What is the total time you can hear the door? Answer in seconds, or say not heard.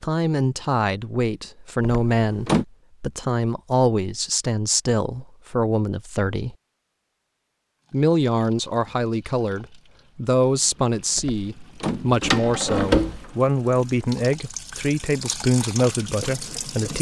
3 s.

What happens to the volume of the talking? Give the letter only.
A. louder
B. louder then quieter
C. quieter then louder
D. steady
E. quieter
D.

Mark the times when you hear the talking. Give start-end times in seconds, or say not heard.
0.0-6.5, 7.9-16.9.